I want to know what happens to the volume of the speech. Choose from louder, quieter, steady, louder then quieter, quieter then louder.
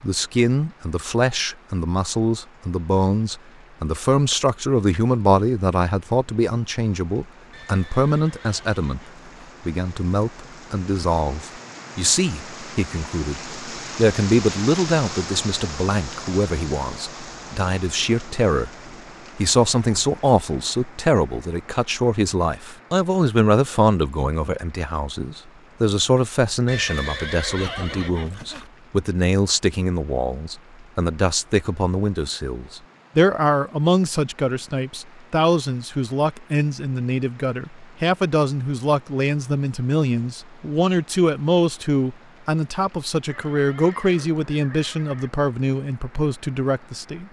steady.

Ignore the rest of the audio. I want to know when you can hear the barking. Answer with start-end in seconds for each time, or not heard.
not heard.